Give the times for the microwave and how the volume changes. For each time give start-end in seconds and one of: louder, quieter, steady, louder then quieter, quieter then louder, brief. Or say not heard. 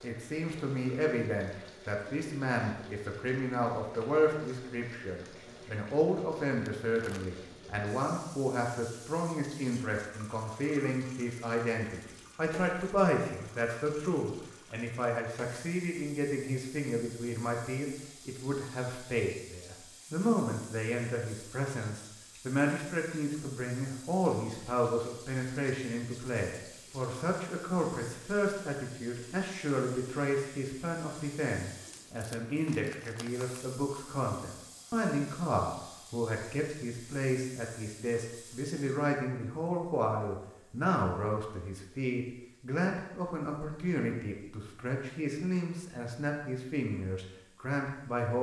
not heard.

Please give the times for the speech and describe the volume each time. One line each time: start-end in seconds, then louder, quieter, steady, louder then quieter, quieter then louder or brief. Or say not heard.
0.0-48.3 steady.